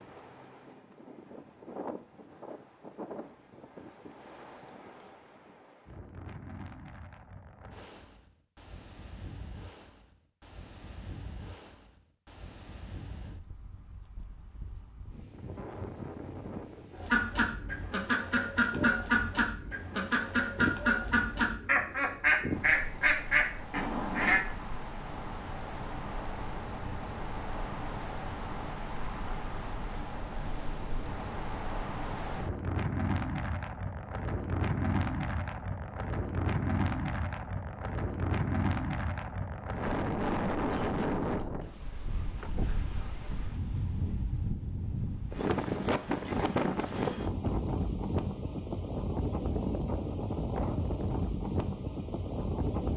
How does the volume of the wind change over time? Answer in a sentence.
The volume of the wind goes up.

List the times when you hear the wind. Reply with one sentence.
The wind can be heard from 0.0 to 52.9 s.